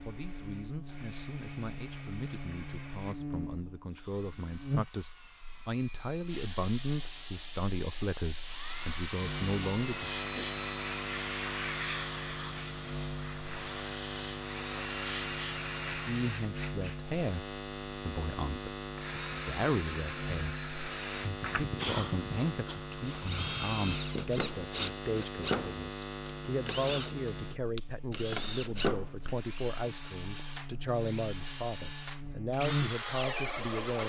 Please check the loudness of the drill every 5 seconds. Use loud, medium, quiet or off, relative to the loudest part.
quiet, medium, loud, loud, loud, loud, loud.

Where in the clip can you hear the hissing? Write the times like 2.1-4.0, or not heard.
6.2-16.1.